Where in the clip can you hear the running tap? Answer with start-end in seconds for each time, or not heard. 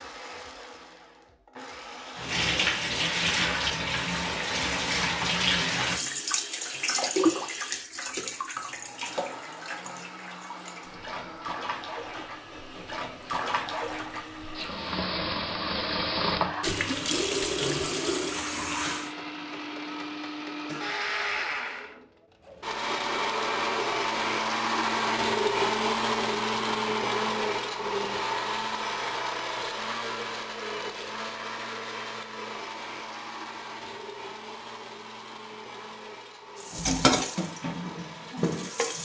2.1-19.1, 36.6-39.0.